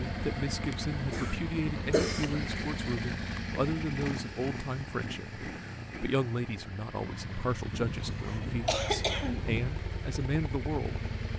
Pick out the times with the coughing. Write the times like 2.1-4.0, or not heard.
1.1-2.5, 7.7-9.8.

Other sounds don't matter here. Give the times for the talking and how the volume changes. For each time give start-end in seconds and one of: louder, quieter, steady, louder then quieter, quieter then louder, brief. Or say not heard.
0.0-11.1 steady.